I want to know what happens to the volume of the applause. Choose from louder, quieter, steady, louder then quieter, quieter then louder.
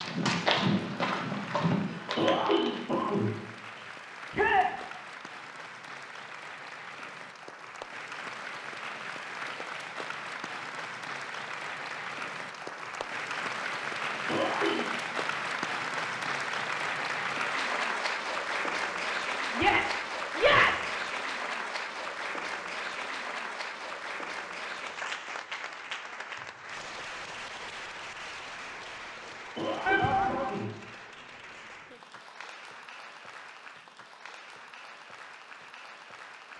louder then quieter.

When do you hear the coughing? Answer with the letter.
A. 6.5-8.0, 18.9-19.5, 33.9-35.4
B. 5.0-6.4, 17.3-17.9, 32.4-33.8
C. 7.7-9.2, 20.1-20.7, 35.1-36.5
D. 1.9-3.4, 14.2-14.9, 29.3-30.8
D.